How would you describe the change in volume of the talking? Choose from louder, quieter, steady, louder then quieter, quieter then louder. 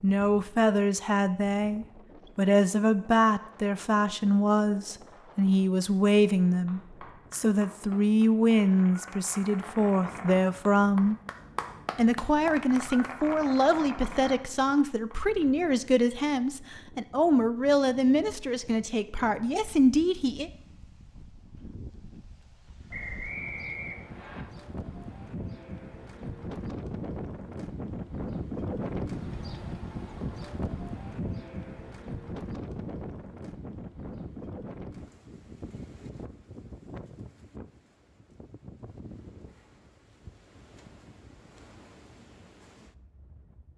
steady.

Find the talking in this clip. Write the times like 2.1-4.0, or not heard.
0.0-11.2, 11.9-20.5.